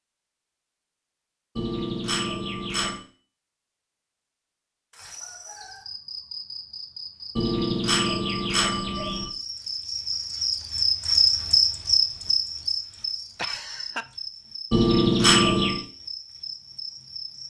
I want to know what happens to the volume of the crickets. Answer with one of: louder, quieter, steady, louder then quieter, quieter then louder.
louder then quieter.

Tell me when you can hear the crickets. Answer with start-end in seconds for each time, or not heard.
4.9-17.4.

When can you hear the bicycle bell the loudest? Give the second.
15 s.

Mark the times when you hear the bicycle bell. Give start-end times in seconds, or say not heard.
1.6-3.0, 7.3-9.3, 14.7-15.8.